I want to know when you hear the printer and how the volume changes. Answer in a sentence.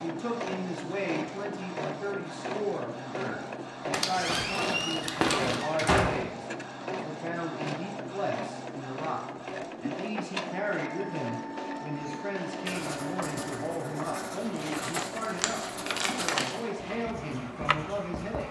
The printer can be heard from 0.0 to 18.4 s, at a steady volume.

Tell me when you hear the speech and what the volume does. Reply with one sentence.
The speech can be heard from 0.0 to 15.6 s, at a steady volume; and briefly from 16.2 to 18.4 s.